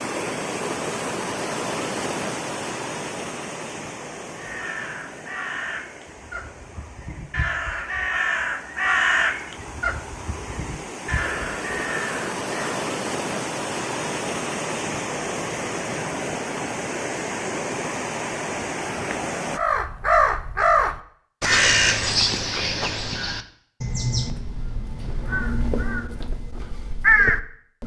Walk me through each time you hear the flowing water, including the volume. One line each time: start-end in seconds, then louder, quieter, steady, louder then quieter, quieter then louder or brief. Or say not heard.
0.0-19.6 quieter then louder.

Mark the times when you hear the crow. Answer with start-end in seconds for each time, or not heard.
4.3-12.8, 19.5-27.8.